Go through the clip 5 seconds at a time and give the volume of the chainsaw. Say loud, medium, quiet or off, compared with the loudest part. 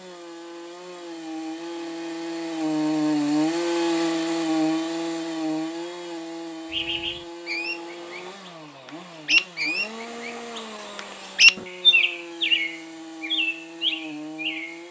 loud, medium, quiet.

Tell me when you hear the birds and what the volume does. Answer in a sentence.
You can hear the birds from 6.7 to 14.8 s, getting louder then quieter.